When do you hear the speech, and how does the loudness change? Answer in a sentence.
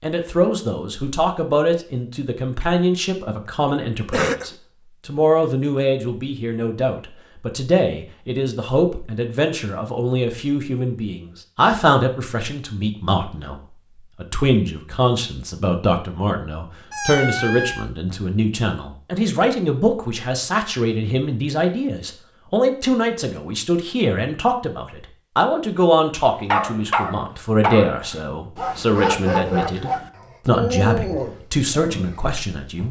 The speech can be heard from 0.0 to 32.8 s, at a steady volume.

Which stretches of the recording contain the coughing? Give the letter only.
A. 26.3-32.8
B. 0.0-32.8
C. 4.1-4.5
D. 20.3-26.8
C.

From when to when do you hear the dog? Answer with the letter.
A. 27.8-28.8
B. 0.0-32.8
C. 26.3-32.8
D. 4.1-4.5
C.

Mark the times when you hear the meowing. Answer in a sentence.
The meowing can be heard from 16.9 to 17.9 s.